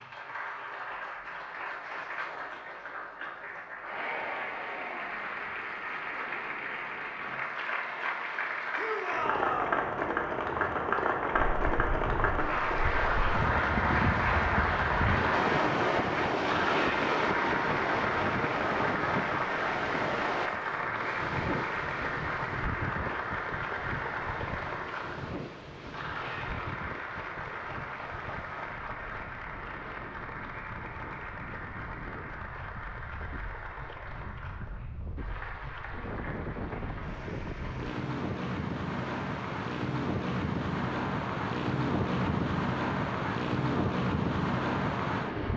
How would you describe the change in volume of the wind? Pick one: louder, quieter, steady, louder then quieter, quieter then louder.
quieter then louder.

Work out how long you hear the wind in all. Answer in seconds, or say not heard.
34 s.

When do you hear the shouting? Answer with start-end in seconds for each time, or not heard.
8.8-9.8.